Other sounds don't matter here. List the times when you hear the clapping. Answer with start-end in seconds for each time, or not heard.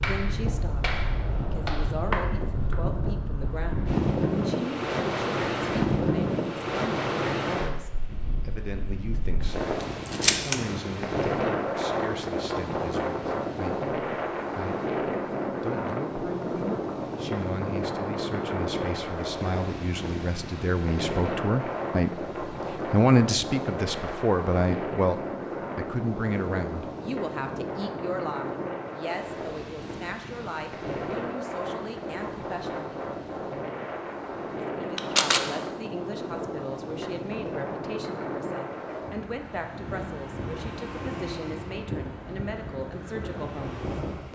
0.0-2.8.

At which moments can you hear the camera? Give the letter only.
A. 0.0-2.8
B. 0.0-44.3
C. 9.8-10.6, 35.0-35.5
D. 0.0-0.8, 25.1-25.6
C.